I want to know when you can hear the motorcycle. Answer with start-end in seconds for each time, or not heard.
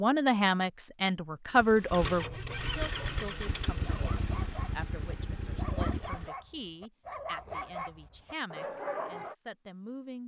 1.6-6.3.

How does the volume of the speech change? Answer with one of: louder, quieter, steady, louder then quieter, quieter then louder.
quieter.